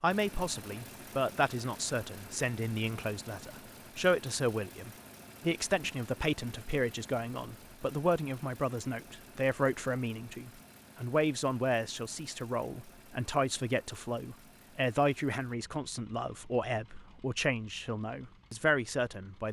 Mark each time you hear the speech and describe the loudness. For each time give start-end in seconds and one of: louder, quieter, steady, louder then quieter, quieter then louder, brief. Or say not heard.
0.0-19.4 steady.